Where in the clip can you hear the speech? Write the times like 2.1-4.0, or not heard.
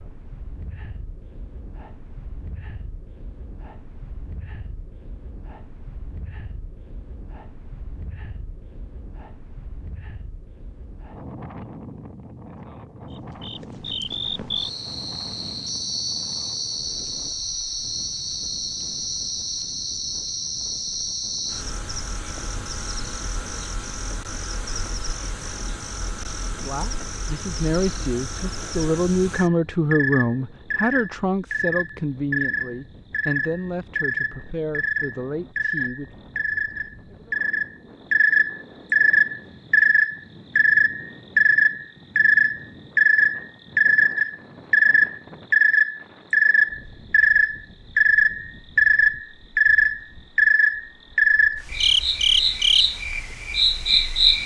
26.6-36.1.